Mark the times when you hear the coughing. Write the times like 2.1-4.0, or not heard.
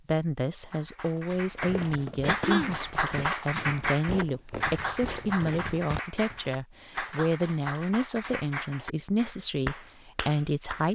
2.2-2.8.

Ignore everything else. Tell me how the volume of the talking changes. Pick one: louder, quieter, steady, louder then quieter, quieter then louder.
steady.